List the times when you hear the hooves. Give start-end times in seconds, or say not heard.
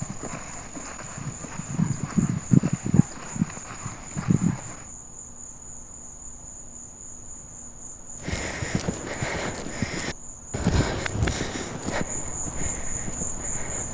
0.0-4.8, 8.2-13.8.